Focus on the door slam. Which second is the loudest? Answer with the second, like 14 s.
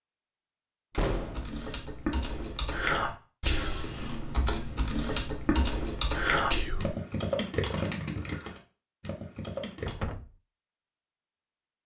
1 s.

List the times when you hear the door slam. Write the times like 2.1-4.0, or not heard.
0.9-1.5, 9.8-10.3.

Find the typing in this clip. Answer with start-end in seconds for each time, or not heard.
1.1-10.0.